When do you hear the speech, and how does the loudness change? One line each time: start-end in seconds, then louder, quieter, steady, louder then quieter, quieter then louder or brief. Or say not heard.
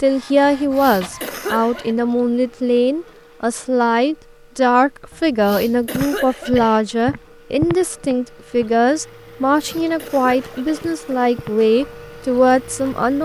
0.0-13.2 steady.